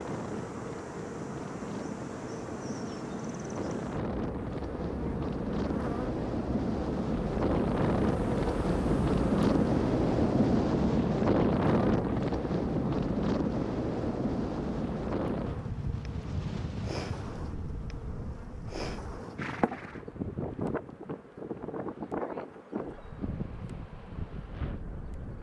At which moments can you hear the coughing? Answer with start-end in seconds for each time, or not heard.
not heard.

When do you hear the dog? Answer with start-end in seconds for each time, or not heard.
not heard.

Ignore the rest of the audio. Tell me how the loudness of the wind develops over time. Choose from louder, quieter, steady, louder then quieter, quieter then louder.
louder then quieter.